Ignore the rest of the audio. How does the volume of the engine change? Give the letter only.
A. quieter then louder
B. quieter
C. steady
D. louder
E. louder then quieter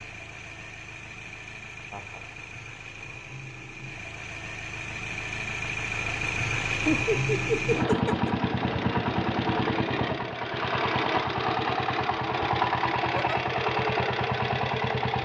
D.